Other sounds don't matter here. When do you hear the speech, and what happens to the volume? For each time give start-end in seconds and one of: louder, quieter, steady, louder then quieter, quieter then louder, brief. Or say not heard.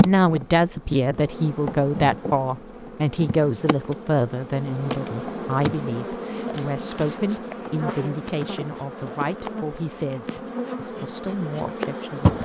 0.0-12.3 quieter.